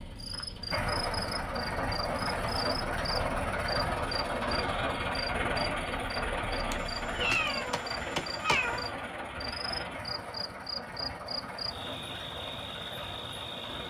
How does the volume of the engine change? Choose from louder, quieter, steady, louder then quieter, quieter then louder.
quieter.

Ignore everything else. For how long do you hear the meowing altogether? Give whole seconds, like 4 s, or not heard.
2 s.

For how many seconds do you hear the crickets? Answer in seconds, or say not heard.
14 s.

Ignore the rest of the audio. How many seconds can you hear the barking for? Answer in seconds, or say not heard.
not heard.